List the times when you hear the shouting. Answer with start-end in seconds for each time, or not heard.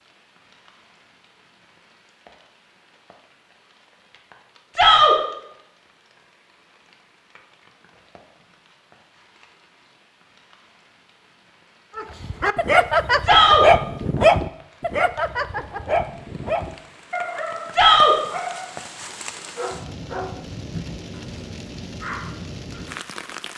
4.8-5.2, 13.2-13.7, 17.7-18.1.